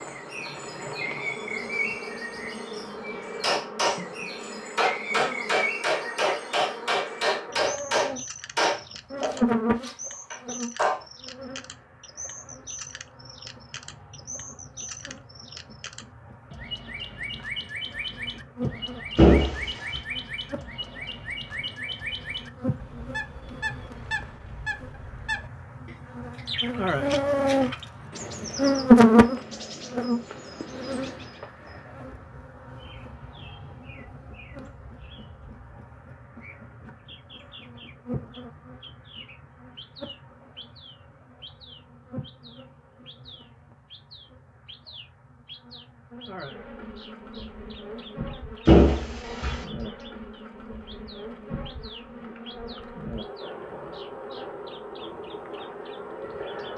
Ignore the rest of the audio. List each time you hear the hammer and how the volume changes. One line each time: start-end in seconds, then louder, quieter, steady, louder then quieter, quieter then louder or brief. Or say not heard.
3.4-11.1 quieter.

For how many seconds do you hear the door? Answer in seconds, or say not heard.
2 s.